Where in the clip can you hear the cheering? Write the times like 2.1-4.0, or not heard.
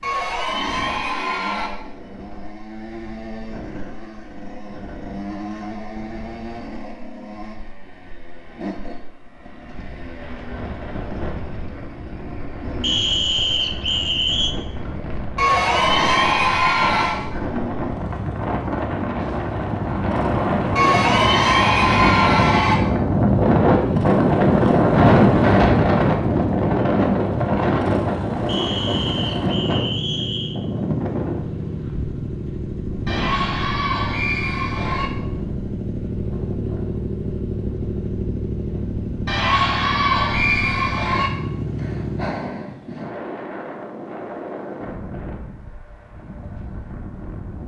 0.0-1.7, 15.3-17.2, 20.8-22.8, 33.0-35.1, 39.2-41.3.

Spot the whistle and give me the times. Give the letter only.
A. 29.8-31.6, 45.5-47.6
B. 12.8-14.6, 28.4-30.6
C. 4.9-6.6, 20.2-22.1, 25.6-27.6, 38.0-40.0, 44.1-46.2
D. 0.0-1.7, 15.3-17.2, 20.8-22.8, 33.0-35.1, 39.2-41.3
B.